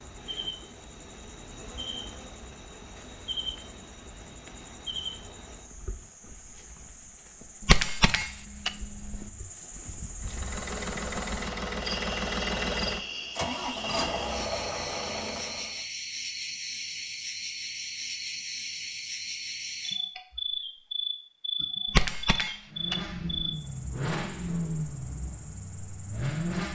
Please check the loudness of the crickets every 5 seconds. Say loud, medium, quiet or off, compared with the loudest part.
medium, medium, loud, loud, loud, quiet.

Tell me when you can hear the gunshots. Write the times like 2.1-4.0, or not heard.
7.6-9.3, 21.9-23.6.